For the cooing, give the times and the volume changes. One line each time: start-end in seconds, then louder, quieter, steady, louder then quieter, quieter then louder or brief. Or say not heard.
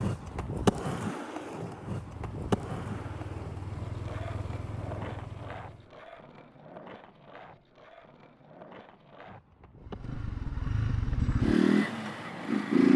not heard.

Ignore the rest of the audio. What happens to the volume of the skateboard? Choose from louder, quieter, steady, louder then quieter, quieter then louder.
quieter.